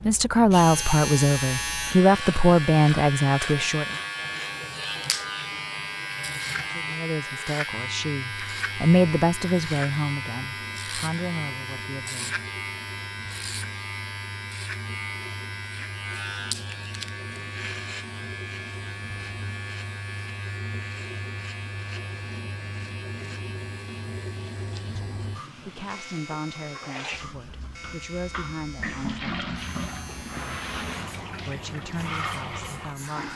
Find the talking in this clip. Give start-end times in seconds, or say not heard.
0.0-4.0, 6.6-12.4, 24.9-29.8, 31.4-33.3.